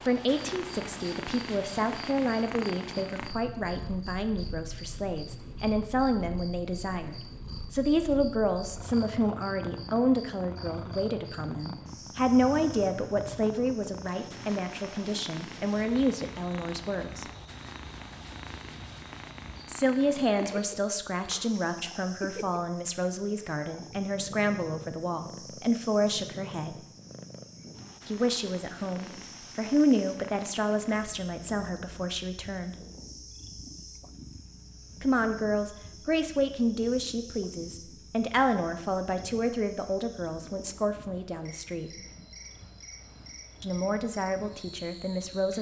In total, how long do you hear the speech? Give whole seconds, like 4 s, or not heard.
38 s.